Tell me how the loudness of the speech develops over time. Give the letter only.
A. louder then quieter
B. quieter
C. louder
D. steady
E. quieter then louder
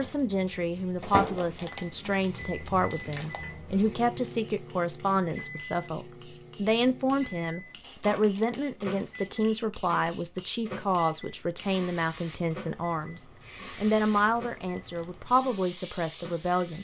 D.